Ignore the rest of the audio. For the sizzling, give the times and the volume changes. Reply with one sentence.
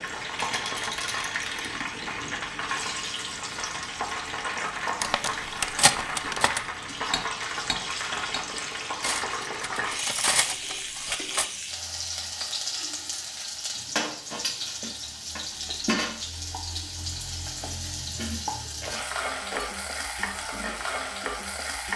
You can hear the sizzling from 0.0 to 21.9 s, at a steady volume.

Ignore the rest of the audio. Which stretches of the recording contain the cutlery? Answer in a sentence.
You can hear the cutlery from 5.0 to 11.4 s.